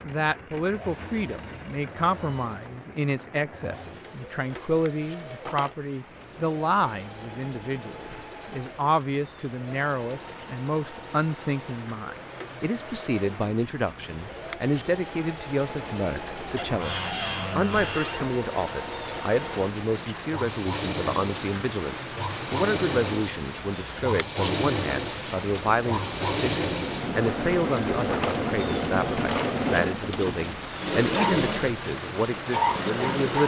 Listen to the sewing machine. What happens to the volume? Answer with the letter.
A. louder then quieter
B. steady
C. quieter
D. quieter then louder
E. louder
E.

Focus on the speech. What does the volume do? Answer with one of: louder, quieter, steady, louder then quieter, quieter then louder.
steady.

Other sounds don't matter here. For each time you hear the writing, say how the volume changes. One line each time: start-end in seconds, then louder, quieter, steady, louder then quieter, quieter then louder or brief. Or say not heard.
not heard.